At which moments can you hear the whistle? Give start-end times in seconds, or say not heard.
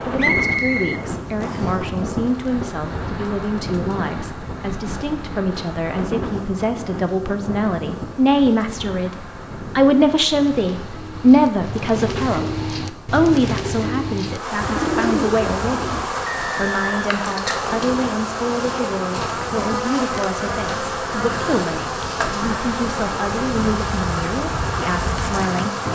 0.1-1.8, 16.2-17.1.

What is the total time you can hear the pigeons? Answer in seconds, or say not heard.
6 s.